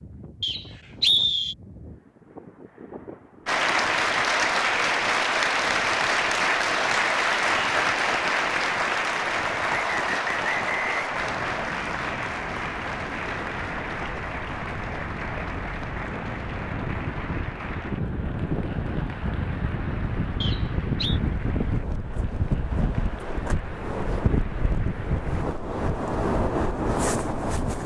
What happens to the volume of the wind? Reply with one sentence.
The volume of the wind goes up.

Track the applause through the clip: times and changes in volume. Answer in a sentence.
You can hear the applause from 3.5 to 25.4 s, getting quieter.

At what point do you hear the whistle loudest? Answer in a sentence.
The loudest moment of the whistle is at 1 second.